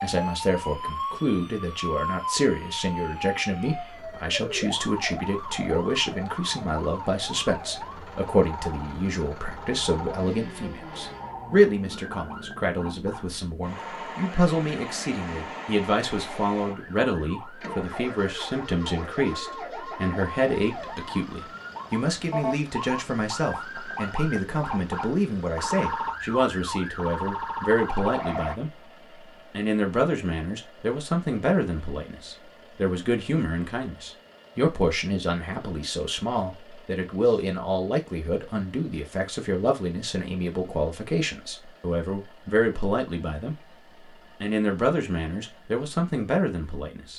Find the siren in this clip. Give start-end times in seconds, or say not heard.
0.0-28.6.